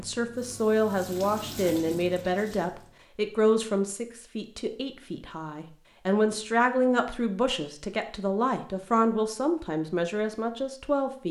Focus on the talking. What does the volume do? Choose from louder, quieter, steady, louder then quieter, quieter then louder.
steady.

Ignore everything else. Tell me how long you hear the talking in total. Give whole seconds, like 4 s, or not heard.
11 s.